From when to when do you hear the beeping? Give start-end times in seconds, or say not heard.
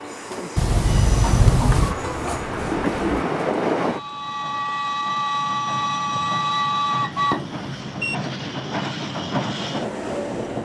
0.6-1.9, 7.1-8.2.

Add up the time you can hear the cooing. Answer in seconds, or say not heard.
2 s.